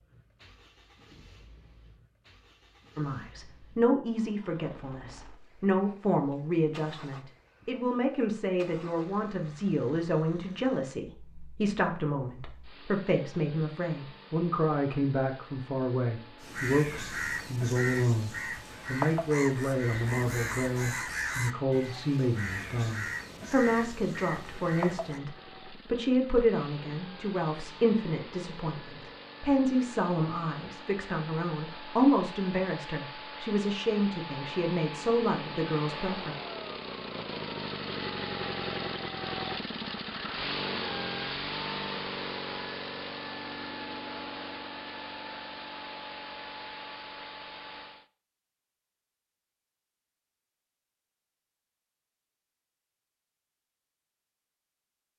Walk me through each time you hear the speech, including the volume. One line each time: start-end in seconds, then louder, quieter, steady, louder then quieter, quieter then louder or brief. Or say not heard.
3.0-36.4 steady.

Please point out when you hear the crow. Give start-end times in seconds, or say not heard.
16.4-25.2.